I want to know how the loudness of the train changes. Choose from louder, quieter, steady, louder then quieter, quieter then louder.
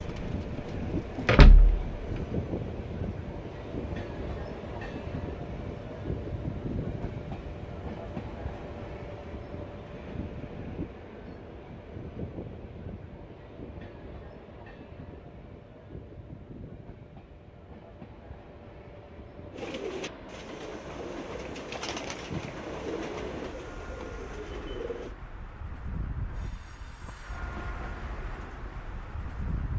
quieter.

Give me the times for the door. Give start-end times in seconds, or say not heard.
1.2-2.2.